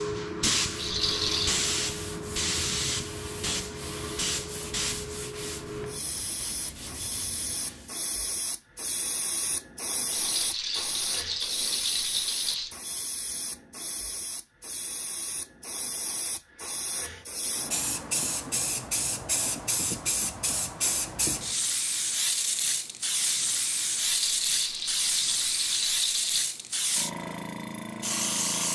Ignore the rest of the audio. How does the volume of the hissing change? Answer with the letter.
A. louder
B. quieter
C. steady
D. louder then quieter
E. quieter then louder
E.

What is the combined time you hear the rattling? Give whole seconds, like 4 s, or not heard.
6 s.